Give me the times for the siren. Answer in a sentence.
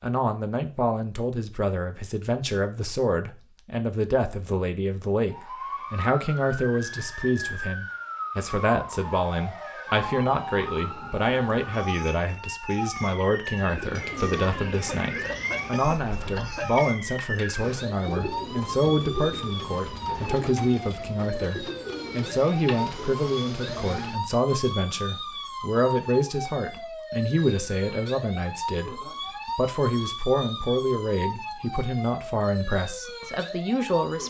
You can hear the siren from 5.3 to 34.2 s.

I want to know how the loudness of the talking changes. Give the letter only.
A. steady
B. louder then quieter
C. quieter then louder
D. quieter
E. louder
A.